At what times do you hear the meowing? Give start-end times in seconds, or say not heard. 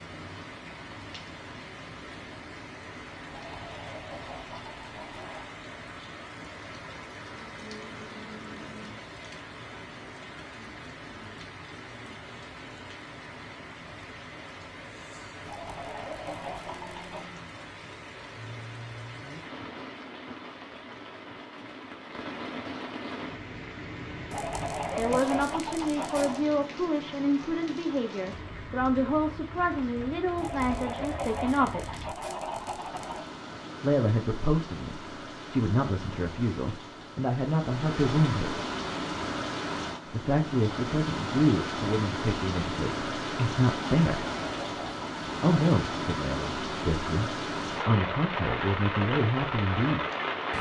not heard.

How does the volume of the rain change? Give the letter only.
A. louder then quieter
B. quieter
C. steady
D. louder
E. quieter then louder
D.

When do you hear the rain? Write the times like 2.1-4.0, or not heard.
0.0-50.5.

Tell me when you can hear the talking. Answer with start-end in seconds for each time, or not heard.
24.9-32.0, 33.8-38.6, 40.0-44.3, 45.4-50.0.